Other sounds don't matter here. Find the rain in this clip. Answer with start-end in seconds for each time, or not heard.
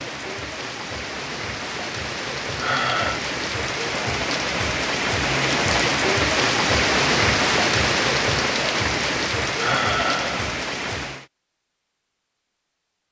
0.0-11.2.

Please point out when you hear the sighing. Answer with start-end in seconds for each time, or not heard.
2.6-3.2, 9.6-10.4.